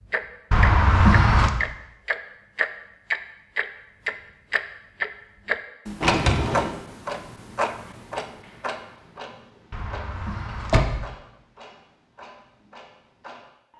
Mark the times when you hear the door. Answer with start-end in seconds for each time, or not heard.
0.5-1.5, 6.0-6.8, 9.7-11.1.